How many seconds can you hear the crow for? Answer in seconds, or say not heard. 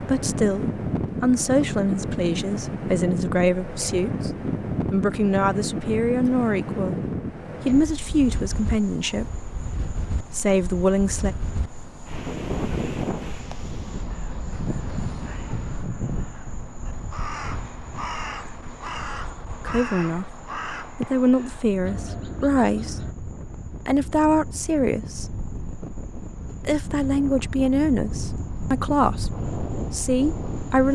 9 s.